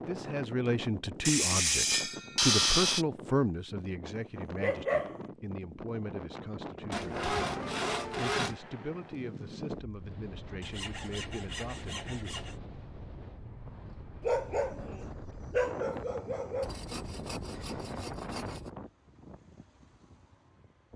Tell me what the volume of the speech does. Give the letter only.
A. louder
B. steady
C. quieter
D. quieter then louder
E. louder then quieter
C.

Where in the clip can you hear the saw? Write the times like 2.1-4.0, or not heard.
1.2-3.0, 6.9-8.6, 10.6-12.6, 16.6-18.7.